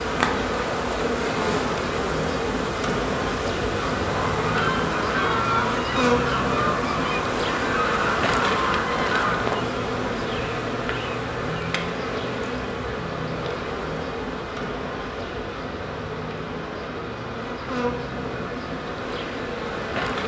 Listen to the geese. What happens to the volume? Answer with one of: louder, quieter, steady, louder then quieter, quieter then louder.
steady.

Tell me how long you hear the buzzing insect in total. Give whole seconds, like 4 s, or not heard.
20 s.